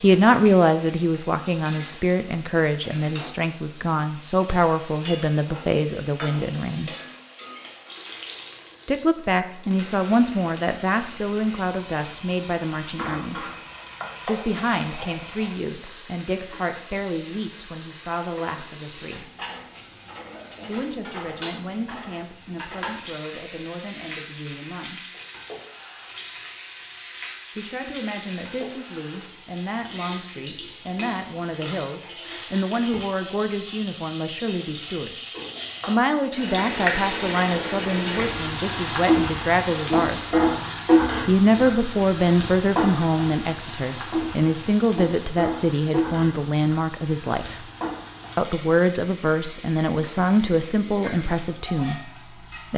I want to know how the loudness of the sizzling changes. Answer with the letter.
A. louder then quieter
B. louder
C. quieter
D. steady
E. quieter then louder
A.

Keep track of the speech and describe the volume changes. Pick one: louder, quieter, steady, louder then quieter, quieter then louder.
quieter then louder.